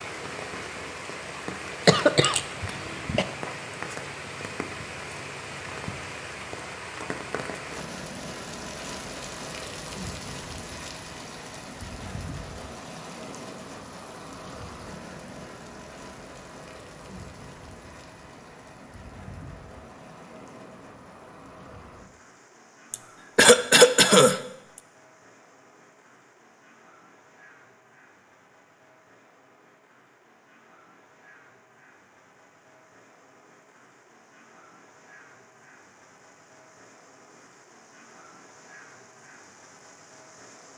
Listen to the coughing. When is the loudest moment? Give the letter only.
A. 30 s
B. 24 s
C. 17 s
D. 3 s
B.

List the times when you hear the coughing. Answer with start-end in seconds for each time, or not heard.
1.9-3.2, 22.9-24.8.